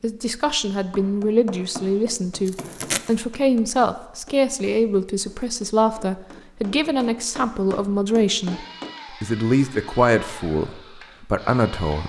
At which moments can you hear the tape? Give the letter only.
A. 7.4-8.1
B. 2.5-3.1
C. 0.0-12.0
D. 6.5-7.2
B.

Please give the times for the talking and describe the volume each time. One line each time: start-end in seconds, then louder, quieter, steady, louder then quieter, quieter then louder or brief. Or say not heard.
0.0-12.0 steady.